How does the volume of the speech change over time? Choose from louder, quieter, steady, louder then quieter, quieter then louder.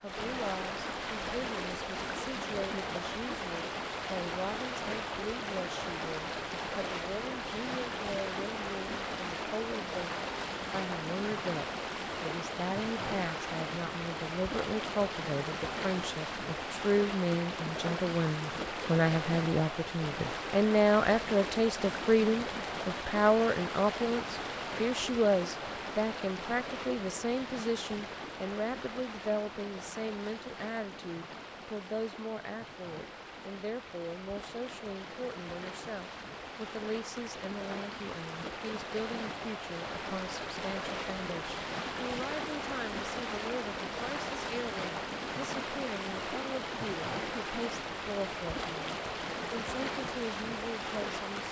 louder then quieter.